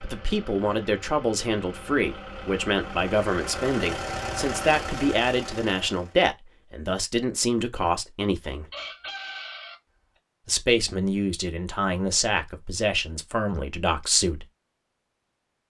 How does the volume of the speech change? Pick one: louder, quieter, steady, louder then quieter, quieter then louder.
steady.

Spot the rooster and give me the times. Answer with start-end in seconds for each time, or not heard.
8.5-9.8.